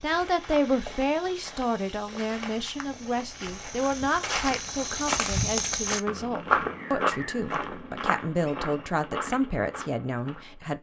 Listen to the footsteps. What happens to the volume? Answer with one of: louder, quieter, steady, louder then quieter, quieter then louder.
louder then quieter.